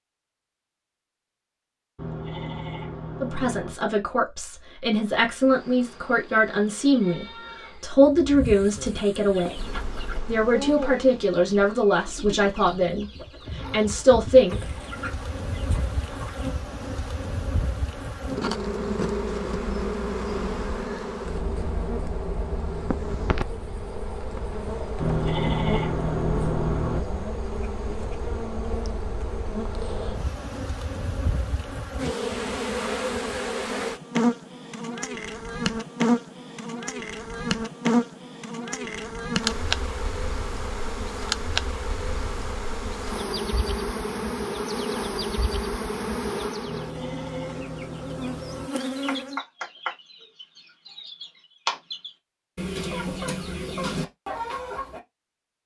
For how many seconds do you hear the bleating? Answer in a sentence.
You can hear the bleating for 6 seconds altogether.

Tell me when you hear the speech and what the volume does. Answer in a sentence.
You can hear the speech from 3.2 to 9.6 s, getting louder; and from 10.2 to 14.8 s, getting quieter then louder.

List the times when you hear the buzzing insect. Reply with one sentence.
You can hear the buzzing insect from 5.3 to 49.4 s.